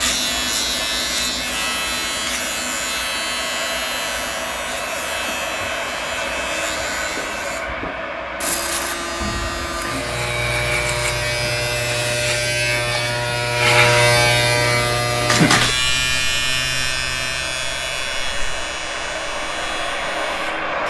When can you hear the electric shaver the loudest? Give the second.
14 s.